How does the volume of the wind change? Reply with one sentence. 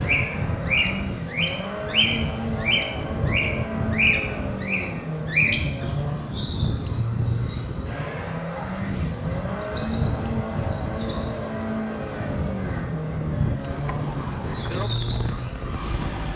The volume of the wind stays about the same.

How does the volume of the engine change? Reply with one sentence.
The loudness of the engine stays about the same.